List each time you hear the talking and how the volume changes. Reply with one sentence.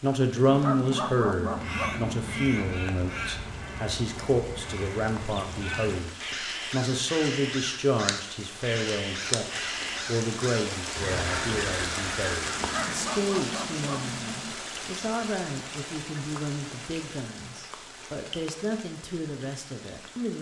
The talking can be heard from 0.0 to 20.3 s, getting quieter.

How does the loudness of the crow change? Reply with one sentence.
The volume of the crow stays about the same.